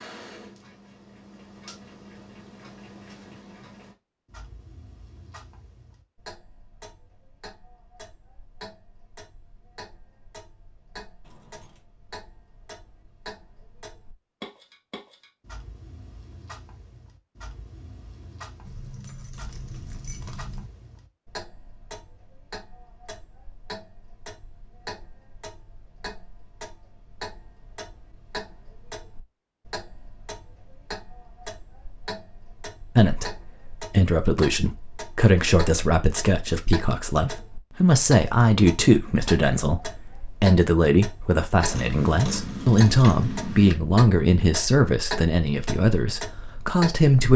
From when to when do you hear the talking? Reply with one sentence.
You can hear the talking from 33.0 to 47.3 s.